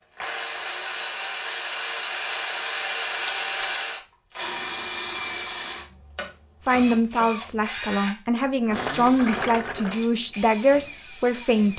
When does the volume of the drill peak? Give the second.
3 s.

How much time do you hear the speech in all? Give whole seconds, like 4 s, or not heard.
5 s.